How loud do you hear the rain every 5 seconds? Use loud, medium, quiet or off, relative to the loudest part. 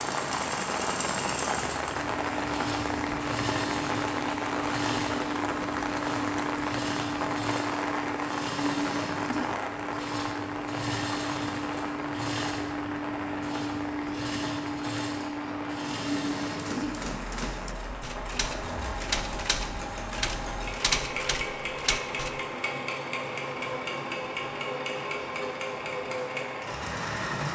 loud, loud, medium, medium, medium, medium.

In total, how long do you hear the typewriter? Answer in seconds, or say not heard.
6 s.